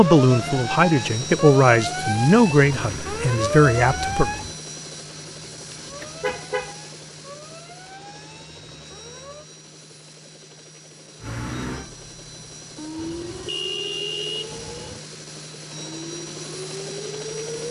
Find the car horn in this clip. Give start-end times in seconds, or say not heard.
5.7-6.8, 12.9-15.0.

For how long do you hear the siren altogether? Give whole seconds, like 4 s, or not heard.
16 s.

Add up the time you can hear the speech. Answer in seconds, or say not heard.
4 s.